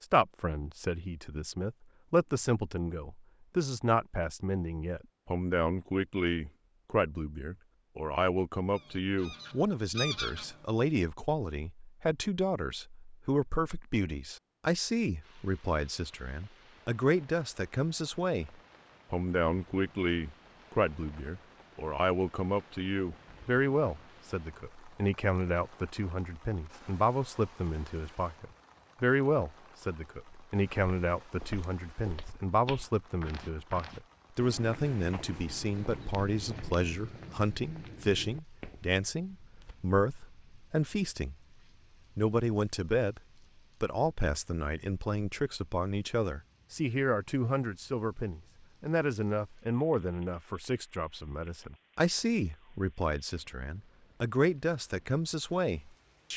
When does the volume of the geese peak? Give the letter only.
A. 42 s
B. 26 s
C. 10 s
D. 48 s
C.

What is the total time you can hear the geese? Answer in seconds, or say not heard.
2 s.